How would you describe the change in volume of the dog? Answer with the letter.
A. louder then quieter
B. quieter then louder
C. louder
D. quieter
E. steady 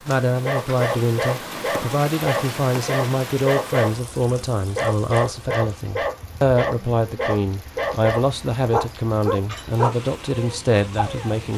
D.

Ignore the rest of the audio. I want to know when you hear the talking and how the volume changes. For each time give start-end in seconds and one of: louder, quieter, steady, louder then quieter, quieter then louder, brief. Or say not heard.
0.1-11.5 steady.